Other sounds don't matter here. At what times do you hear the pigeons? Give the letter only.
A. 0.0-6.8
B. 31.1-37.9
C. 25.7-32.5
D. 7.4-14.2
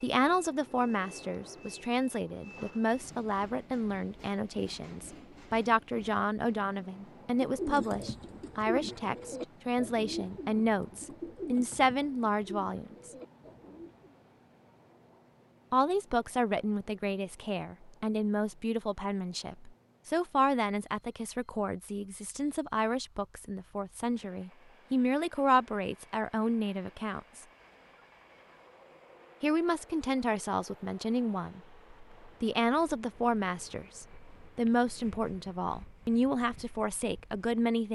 D.